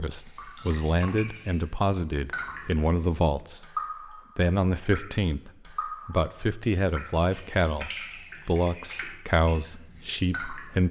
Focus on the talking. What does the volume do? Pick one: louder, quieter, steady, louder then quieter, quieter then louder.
steady.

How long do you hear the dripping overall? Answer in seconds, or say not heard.
11 s.